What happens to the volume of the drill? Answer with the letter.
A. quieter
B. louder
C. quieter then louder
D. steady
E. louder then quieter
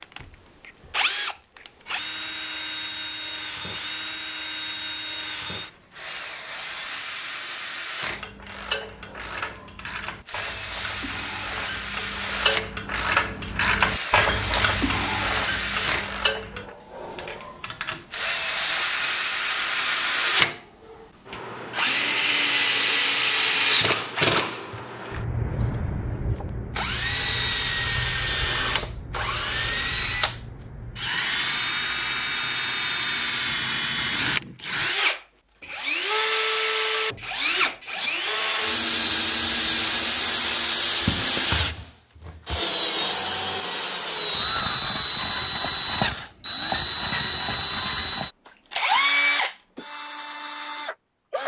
B.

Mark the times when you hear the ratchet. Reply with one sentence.
The ratchet can be heard from 8.1 to 16.7 s.